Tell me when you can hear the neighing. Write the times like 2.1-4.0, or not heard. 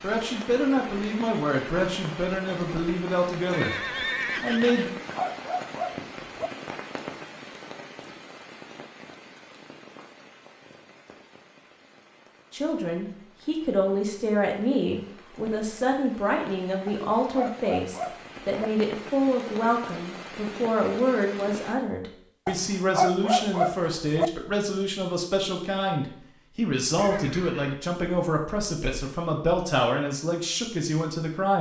3.5-4.9, 26.9-27.9.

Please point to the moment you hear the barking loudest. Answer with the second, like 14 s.
23 s.